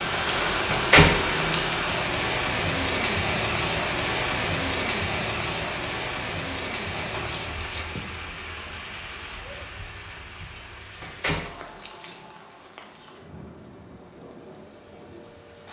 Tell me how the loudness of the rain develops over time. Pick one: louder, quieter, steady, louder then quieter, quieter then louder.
quieter.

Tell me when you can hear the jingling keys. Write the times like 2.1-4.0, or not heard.
0.7-1.9, 7.0-8.3, 11.0-12.7.